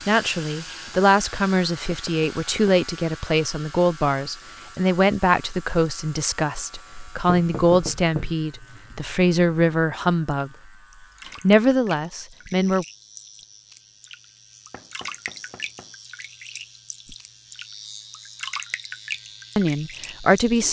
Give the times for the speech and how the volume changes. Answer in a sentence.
You can hear the speech from 0.1 to 10.5 s, at a steady volume; briefly from 11.4 to 12.8 s; and briefly from 19.6 to 20.6 s.